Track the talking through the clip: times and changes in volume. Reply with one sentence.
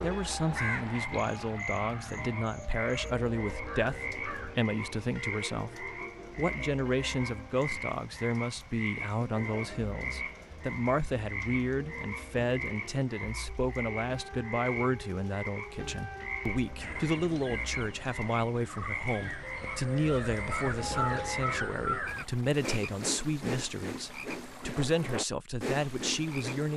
You can hear the talking from 0.0 to 26.7 s, at a steady volume.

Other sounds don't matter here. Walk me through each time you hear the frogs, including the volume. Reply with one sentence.
You can hear the frogs from 0.0 to 26.7 s, at a steady volume.